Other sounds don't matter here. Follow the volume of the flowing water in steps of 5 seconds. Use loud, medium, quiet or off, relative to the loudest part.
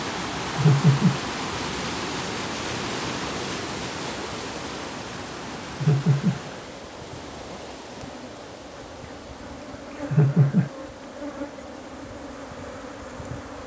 loud, medium, quiet.